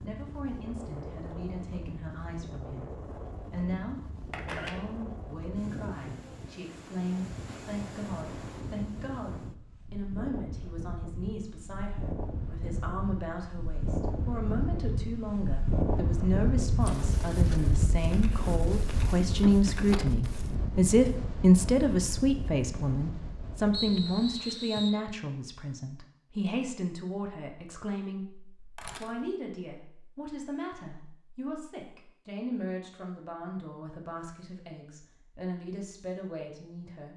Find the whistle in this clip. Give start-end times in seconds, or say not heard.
23.7-25.0.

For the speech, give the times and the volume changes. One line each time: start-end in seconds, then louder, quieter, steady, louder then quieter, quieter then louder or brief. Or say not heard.
0.0-2.9 brief
3.5-37.1 louder then quieter.